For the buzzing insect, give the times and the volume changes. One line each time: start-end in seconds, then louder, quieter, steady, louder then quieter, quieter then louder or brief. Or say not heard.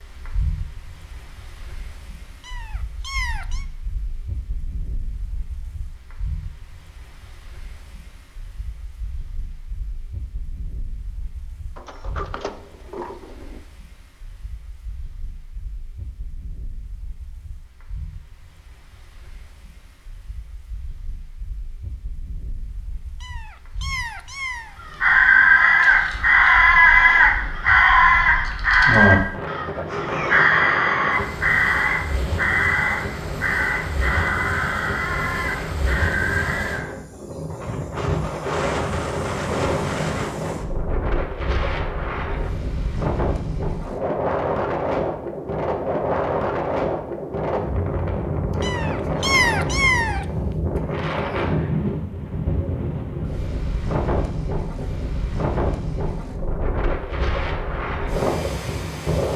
not heard.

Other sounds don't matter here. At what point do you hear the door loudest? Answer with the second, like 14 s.
12 s.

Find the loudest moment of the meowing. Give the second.
49 s.